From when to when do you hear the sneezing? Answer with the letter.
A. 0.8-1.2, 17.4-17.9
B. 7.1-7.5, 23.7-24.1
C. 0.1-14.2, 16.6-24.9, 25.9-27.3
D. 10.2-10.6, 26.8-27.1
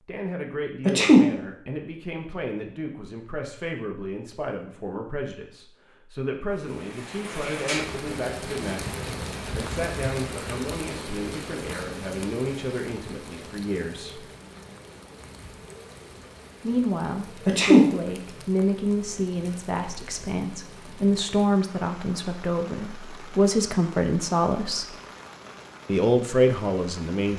A.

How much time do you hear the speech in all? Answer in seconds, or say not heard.
24 s.